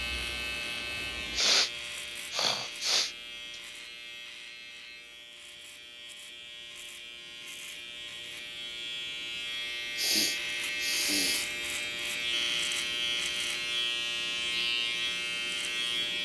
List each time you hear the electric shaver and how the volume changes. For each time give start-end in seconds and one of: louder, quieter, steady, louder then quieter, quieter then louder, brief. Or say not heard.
0.0-16.1 quieter then louder.